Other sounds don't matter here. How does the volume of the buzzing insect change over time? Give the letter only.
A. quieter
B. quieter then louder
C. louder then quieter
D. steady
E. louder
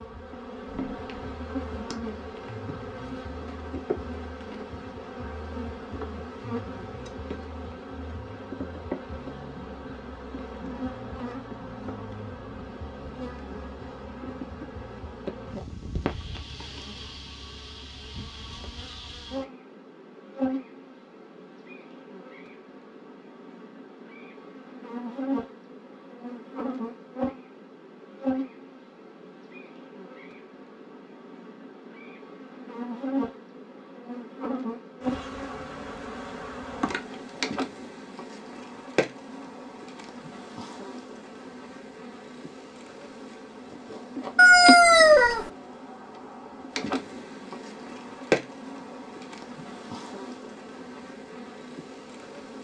D.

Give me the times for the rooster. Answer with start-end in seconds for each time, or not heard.
44.4-45.5.